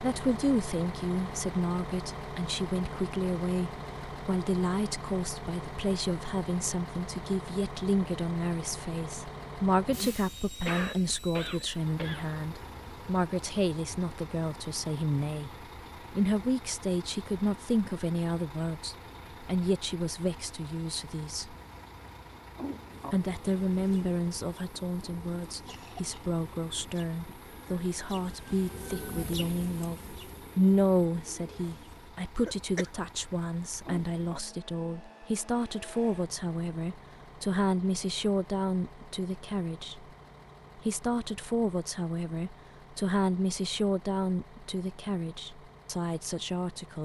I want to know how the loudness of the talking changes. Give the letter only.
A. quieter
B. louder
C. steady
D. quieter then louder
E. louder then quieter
C.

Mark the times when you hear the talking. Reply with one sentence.
The talking can be heard from 0.0 to 21.6 s, from 23.1 to 40.0 s and from 40.8 to 47.0 s.